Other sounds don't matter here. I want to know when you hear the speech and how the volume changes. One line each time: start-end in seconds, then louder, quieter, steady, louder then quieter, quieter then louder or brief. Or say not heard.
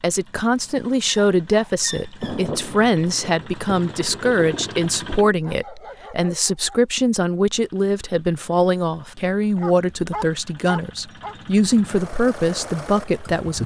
0.0-13.6 steady.